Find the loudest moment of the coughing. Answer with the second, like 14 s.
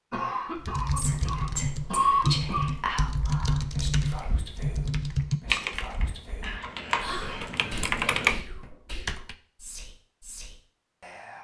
2 s.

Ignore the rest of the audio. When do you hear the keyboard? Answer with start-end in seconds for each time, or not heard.
0.6-9.3.